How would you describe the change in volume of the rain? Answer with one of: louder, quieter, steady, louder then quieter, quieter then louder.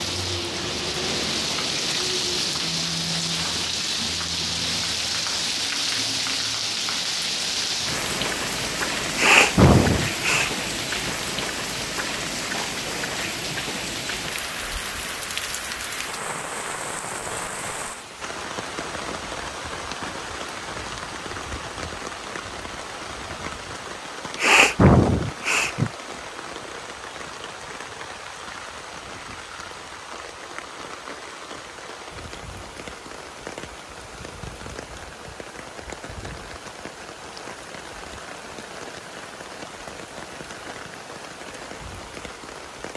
quieter.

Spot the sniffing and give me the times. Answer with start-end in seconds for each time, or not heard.
9.2-10.5, 24.4-25.9.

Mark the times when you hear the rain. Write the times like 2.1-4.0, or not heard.
0.0-42.9.